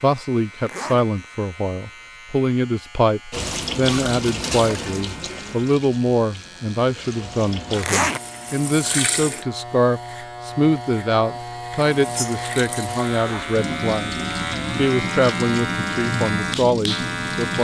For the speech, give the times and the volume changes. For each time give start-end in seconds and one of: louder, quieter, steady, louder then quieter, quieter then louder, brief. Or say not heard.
0.0-14.2 steady
14.8-17.5 brief.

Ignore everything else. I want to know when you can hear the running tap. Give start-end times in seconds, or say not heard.
3.3-9.4, 11.8-17.5.